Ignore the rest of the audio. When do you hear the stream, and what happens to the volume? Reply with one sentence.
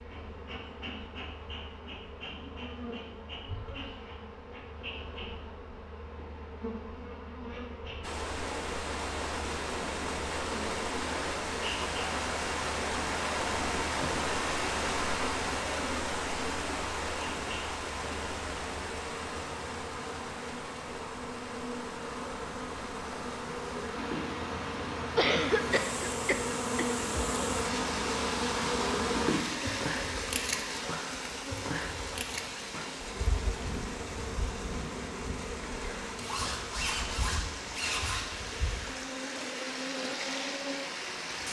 You can hear the stream from 8.0 to 41.4 s, getting quieter.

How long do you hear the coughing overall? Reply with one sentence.
The coughing can be heard for 2 seconds in total.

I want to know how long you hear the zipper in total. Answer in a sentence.
You can hear the zipper for 2 seconds altogether.